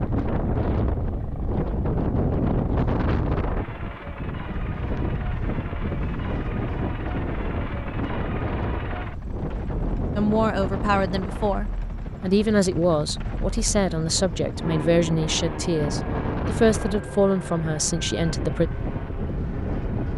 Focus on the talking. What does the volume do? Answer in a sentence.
The loudness of the talking stays about the same.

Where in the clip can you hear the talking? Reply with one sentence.
You can hear the talking from 10.2 to 18.7 s.